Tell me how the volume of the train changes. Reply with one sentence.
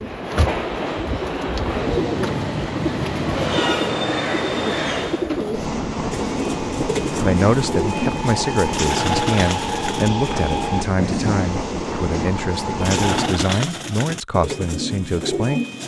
The loudness of the train stays about the same.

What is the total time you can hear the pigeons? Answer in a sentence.
You can hear the pigeons for 14 seconds altogether.